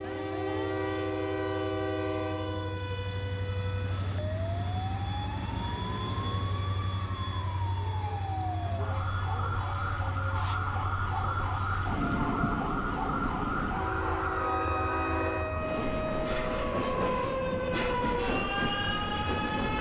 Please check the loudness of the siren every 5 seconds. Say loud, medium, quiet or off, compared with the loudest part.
medium, medium, loud, loud.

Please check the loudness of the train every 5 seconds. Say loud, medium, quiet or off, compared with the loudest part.
loud, medium, loud, loud.